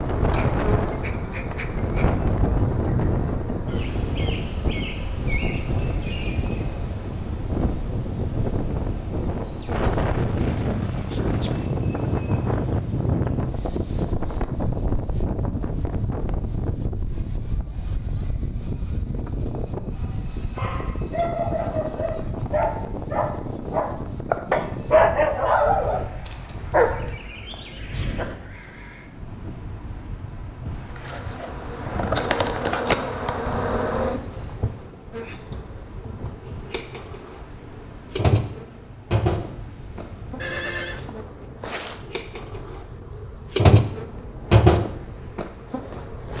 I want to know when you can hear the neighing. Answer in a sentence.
The neighing can be heard from 40.4 to 41.0 s.